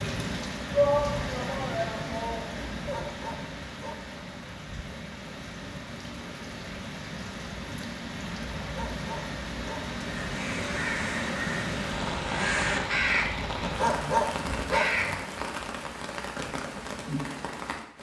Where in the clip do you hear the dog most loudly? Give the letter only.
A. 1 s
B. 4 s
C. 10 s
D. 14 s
D.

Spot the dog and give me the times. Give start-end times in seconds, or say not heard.
2.9-4.2, 8.7-9.8, 13.8-15.2.